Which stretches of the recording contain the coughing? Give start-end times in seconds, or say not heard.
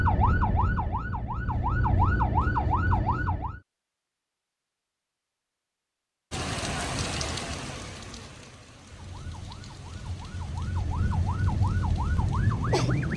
not heard.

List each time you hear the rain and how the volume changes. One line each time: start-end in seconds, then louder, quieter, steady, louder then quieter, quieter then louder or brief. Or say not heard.
6.3-13.1 quieter.